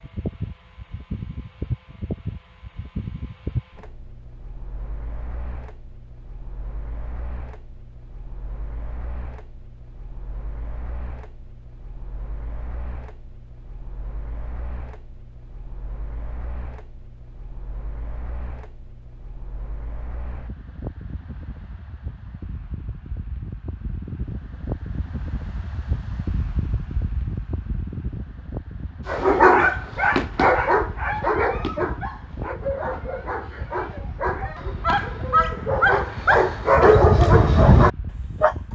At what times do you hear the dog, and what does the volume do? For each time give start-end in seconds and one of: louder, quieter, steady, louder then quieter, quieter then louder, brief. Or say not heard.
29.1-38.5 quieter then louder.